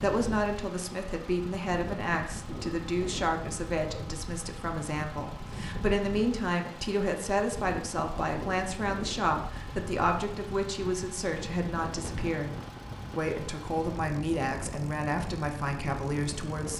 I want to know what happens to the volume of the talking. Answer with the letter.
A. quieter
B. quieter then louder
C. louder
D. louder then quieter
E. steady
E.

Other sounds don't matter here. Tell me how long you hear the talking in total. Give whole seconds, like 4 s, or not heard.
16 s.